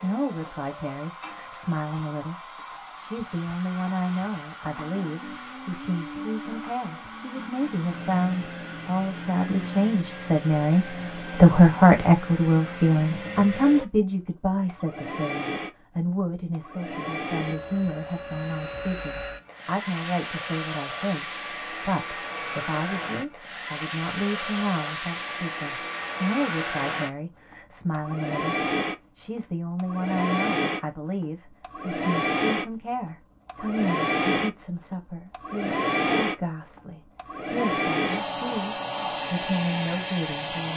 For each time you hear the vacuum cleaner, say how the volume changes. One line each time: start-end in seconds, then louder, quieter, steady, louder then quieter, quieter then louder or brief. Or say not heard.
0.0-40.7 louder.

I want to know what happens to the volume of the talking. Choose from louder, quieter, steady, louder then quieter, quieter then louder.
louder then quieter.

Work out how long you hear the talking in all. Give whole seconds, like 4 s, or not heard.
40 s.